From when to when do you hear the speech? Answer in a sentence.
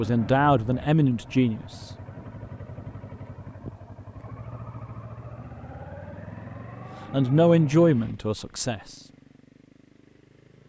You can hear the speech from 0.0 to 1.6 s and from 7.1 to 8.9 s.